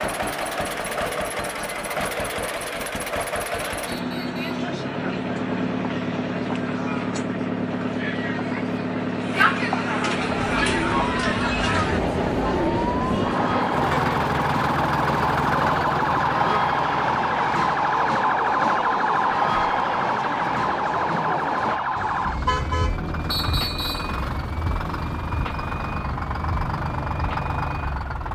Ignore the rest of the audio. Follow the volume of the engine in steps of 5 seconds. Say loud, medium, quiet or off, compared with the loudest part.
loud, loud, loud, loud, medium, loud.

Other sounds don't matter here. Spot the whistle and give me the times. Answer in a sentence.
The whistle can be heard from 3.9 to 4.6 s and from 23.3 to 24.1 s.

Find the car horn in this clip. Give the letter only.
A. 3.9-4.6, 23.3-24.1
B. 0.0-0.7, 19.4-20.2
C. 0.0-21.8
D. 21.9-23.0
D.